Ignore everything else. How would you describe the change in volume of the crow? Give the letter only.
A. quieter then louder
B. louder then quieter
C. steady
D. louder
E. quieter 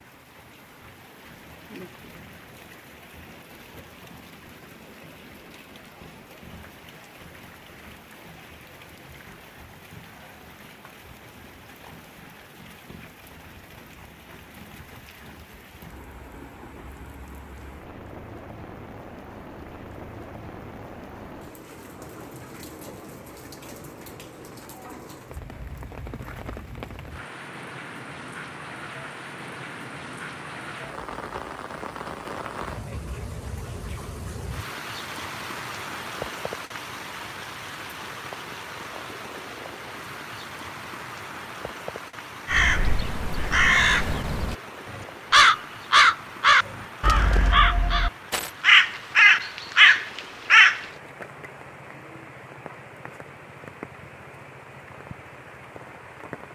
D.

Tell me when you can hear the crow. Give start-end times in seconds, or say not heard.
42.5-50.9.